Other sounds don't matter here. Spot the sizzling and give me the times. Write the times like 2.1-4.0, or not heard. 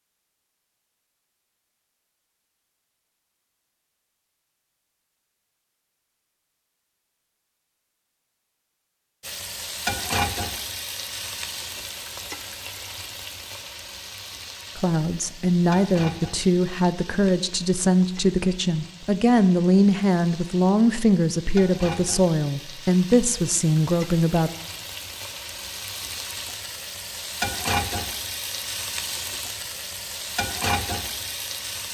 9.2-31.8.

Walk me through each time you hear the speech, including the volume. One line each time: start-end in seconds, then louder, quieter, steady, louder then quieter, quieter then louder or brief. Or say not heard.
14.8-24.5 steady.